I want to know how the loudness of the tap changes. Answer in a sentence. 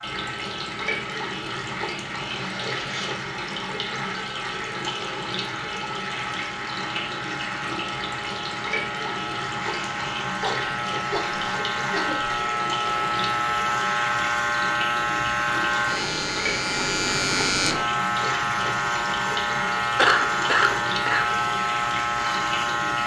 The volume of the tap stays about the same.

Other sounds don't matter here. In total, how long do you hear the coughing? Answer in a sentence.
The coughing can be heard for 4 seconds in total.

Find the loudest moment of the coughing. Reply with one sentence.
The volume of the coughing peaks at 20 seconds.